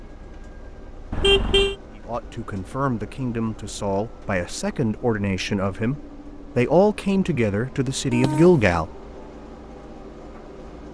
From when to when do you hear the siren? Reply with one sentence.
The siren can't be heard in this clip.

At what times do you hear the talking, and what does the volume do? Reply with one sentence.
You can hear the talking from 1.9 to 8.9 s, getting louder.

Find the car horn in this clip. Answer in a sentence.
The car horn can be heard from 1.1 to 1.8 s and from 8.1 to 8.6 s.